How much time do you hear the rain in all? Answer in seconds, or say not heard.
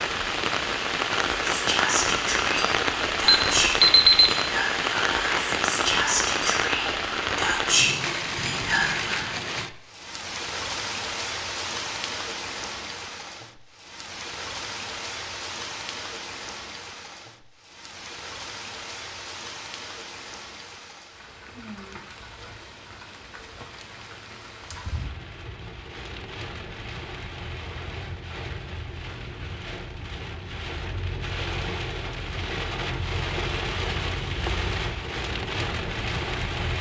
37 s.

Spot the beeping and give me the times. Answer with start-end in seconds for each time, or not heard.
3.2-4.3.